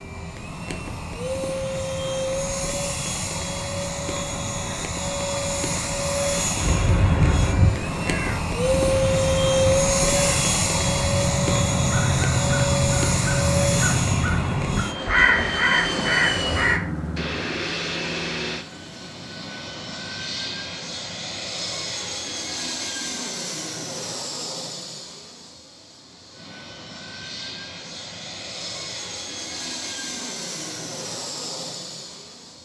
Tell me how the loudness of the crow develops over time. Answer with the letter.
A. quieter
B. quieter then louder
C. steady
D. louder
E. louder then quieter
B.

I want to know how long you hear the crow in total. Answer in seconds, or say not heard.
10 s.